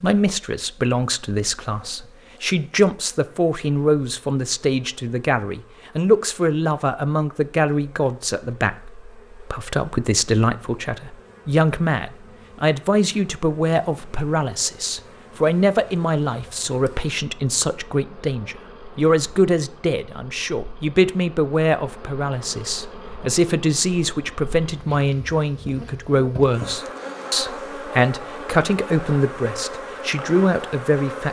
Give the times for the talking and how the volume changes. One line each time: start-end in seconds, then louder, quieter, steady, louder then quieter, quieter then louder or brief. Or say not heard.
0.0-31.2 steady.